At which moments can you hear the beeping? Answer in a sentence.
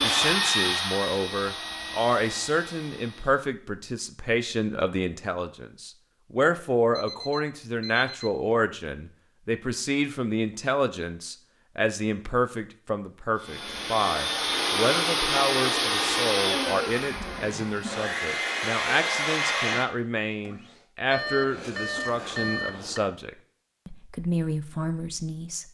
You can hear the beeping from 7.0 to 8.3 s and from 21.1 to 23.0 s.